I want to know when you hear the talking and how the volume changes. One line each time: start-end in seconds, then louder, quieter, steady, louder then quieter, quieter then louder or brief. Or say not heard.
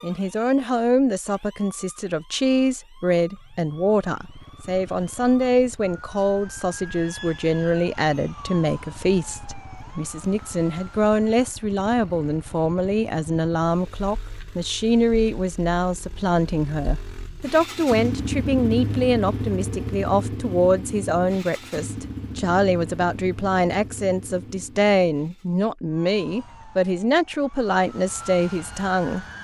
0.0-29.2 steady.